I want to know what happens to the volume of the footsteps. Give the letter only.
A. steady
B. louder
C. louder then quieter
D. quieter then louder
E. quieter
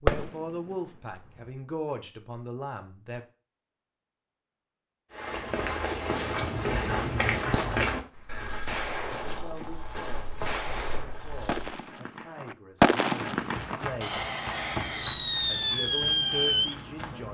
E.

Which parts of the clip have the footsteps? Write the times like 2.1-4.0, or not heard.
5.1-11.8, 13.3-17.2.